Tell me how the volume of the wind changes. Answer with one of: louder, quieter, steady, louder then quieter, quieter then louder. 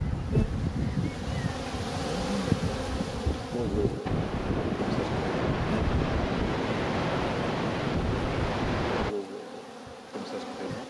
louder.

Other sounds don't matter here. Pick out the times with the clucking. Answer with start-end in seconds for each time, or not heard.
not heard.